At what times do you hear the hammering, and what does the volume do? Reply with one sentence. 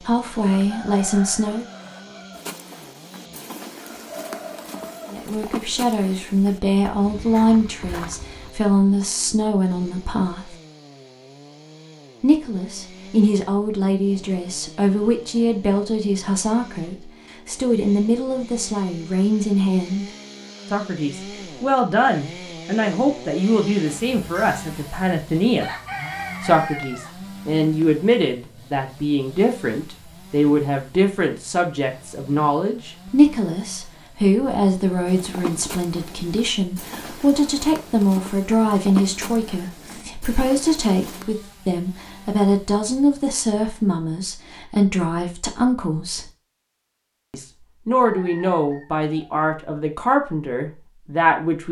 The hammering can't be heard in this clip.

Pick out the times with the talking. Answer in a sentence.
The talking can be heard from 0.1 to 1.6 s, from 5.1 to 10.6 s, from 12.2 to 20.1 s, from 20.7 to 25.8 s, from 26.4 to 46.2 s and from 47.3 to 51.6 s.